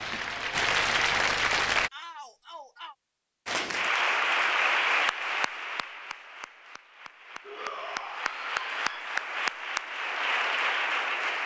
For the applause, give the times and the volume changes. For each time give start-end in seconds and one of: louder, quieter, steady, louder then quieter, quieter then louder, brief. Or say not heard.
0.0-1.9 brief
3.5-11.4 quieter then louder.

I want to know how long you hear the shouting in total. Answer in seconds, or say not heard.
3 s.